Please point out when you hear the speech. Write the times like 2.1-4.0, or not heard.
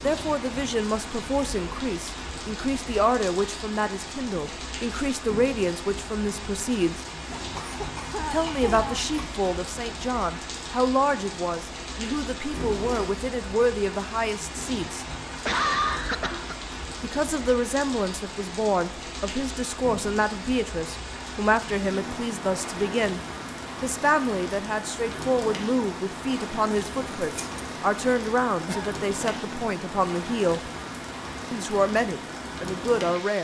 0.0-7.0, 8.3-15.1, 17.0-23.2, 23.8-30.7, 31.5-33.3.